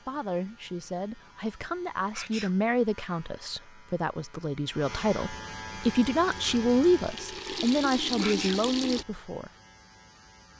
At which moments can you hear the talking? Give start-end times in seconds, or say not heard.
0.1-9.5.